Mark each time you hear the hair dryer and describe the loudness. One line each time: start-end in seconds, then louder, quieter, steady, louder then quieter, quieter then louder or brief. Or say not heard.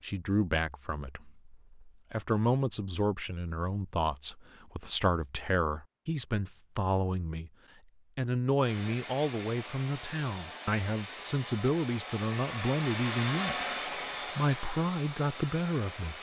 8.6-16.1 louder then quieter.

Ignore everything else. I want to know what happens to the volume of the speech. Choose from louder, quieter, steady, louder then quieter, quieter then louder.
steady.